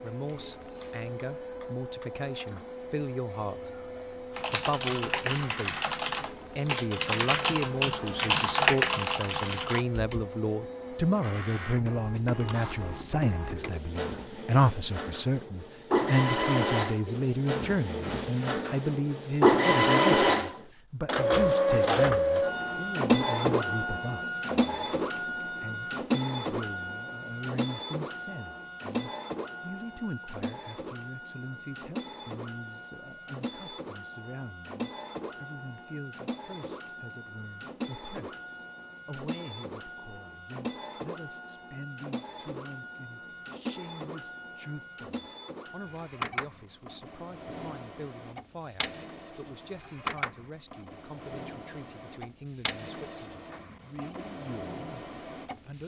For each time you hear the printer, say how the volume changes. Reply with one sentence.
You can hear the printer from 0.0 to 55.8 s, getting louder then quieter.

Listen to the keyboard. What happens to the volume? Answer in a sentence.
The volume of the keyboard goes up, then down.